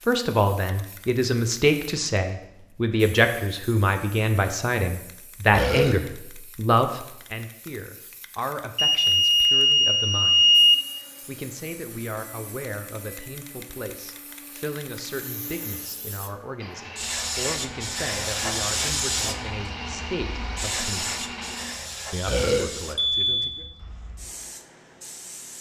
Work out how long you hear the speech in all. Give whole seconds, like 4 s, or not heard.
22 s.